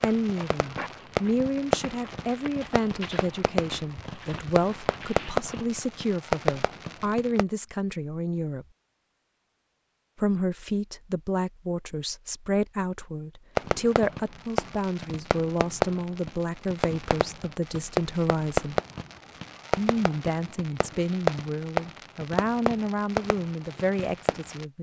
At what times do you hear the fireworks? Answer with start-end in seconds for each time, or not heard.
0.0-7.5, 13.6-24.6.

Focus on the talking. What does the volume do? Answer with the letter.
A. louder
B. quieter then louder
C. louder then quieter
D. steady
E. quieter
D.